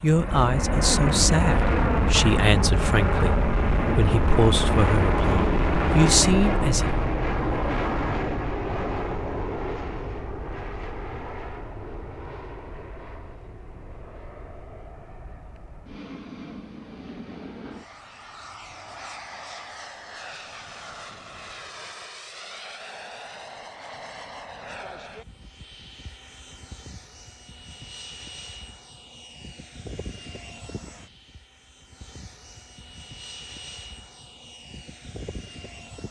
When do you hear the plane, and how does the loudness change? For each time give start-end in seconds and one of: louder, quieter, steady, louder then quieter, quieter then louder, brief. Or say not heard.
0.0-36.0 quieter.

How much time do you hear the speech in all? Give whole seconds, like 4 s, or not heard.
6 s.